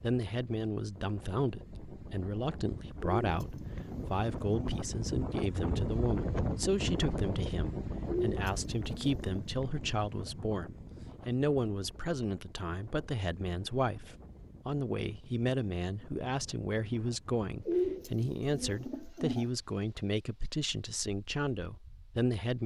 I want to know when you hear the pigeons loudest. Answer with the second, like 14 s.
18 s.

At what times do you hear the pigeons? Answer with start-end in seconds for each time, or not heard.
3.0-4.8, 8.1-9.4, 17.6-19.5.